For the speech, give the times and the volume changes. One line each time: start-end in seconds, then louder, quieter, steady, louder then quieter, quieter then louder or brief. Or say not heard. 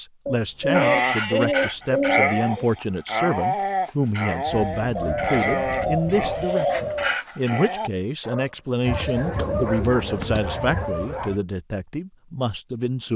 0.0-13.1 steady.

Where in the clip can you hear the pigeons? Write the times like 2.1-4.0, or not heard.
0.2-2.6, 5.0-7.1, 8.8-10.8.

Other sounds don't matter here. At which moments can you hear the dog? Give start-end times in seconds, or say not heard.
0.7-11.3.